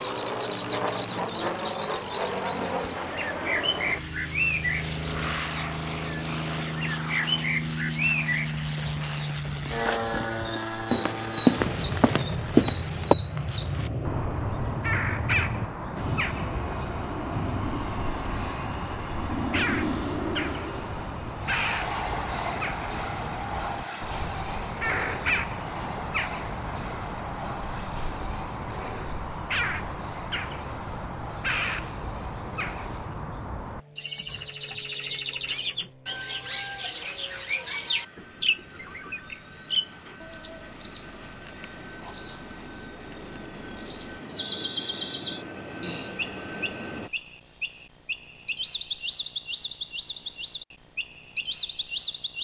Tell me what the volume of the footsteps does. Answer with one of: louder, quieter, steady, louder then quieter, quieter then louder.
louder.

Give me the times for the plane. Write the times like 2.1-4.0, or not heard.
0.0-47.1.